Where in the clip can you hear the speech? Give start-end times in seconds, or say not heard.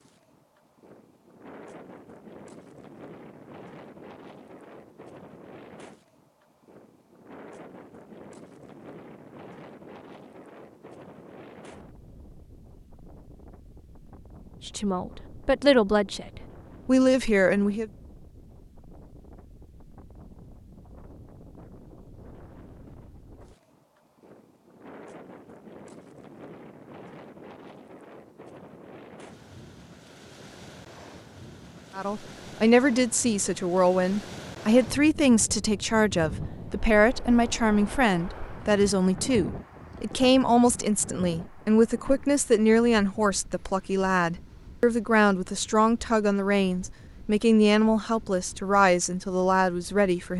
14.7-17.9, 31.9-50.3.